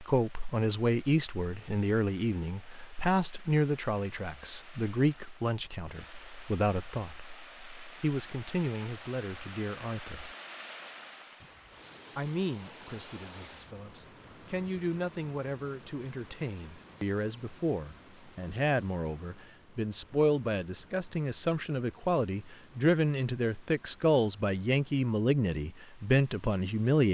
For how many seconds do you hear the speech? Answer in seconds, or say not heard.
25 s.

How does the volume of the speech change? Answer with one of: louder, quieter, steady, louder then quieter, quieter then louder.
quieter then louder.